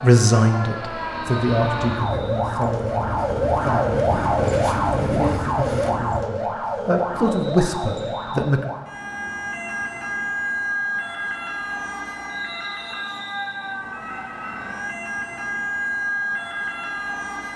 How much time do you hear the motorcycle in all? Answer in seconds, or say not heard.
4 s.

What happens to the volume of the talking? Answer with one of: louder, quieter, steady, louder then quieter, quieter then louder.
quieter then louder.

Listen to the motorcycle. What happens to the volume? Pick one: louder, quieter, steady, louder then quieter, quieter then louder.
louder.